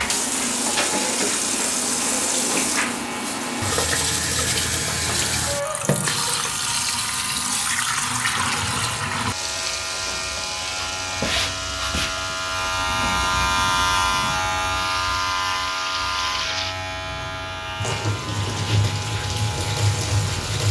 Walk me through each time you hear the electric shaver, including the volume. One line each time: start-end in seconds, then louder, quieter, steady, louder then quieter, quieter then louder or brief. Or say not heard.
0.0-20.6 louder then quieter.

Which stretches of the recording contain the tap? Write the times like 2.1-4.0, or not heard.
0.0-20.6.